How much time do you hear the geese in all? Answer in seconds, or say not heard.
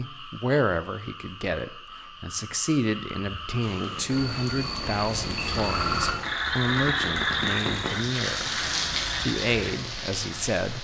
not heard.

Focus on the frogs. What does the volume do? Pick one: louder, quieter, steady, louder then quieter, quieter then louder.
louder then quieter.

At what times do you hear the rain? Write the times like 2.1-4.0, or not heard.
3.6-10.7.